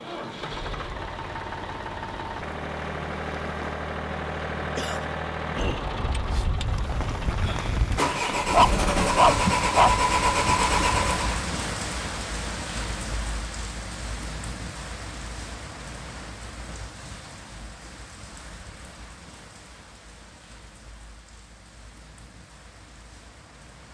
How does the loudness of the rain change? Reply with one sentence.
The volume of the rain goes up, then down.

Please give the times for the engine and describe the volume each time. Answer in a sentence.
You can hear the engine from 0.0 to 11.4 s, getting louder.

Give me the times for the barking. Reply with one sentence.
The barking can be heard from 8.5 to 9.9 s.